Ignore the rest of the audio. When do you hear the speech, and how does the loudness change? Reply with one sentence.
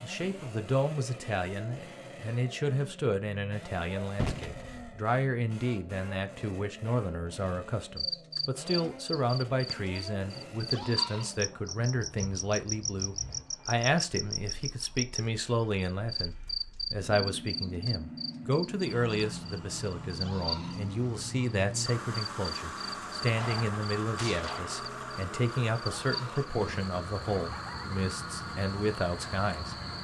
You can hear the speech from 0.0 to 29.8 s, at a steady volume.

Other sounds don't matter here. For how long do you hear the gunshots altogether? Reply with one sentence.
You can hear the gunshots for 2 seconds altogether.